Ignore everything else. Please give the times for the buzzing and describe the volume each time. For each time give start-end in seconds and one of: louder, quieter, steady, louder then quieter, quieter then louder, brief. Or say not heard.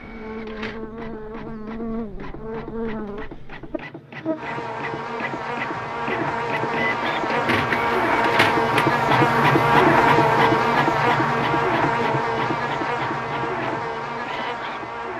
0.0-15.1 louder then quieter.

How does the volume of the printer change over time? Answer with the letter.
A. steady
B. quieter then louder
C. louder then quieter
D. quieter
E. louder
C.